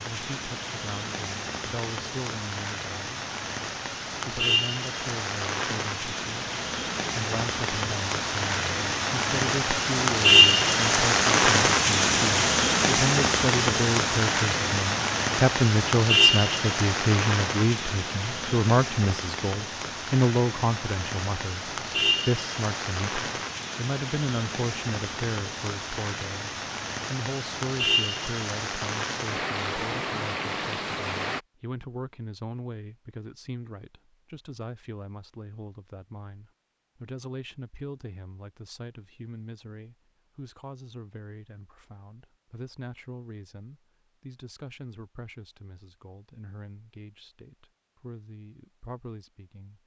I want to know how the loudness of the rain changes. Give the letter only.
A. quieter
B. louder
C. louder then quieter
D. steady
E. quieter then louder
C.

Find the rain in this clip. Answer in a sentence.
The rain can be heard from 0.0 to 31.4 s.